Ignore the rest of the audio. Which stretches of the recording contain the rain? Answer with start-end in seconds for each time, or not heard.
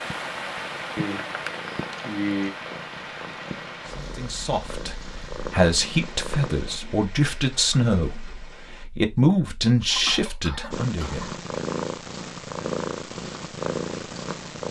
0.0-8.8.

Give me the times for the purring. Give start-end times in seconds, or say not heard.
0.1-6.8, 10.7-14.6.